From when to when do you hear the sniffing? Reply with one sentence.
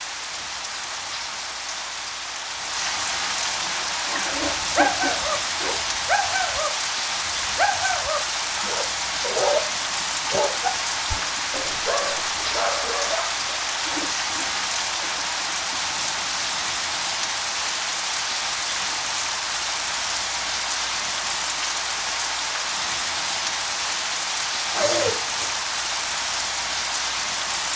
You can hear the sniffing from 4.0 to 5.8 s, from 13.8 to 15.8 s and from 24.7 to 25.6 s.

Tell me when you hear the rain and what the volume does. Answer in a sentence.
The rain can be heard from 0.0 to 27.7 s, at a steady volume.